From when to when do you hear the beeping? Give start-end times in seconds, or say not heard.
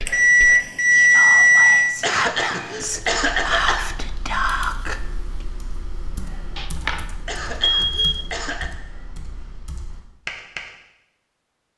0.1-2.0, 6.5-8.2.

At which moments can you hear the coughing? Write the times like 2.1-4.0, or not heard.
2.0-4.0, 7.2-8.7.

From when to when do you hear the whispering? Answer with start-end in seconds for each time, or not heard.
0.0-5.5.